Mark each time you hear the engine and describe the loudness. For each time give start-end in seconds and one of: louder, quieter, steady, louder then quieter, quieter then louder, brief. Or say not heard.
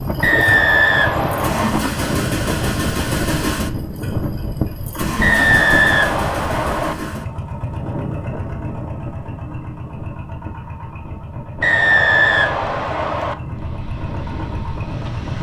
0.0-15.3 quieter.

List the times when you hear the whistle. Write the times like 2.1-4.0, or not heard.
0.2-1.8, 5.2-7.0, 11.6-13.3.